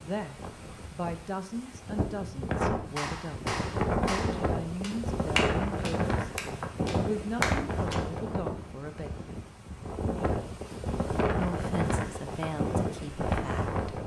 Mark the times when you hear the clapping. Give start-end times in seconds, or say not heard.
2.8-8.0.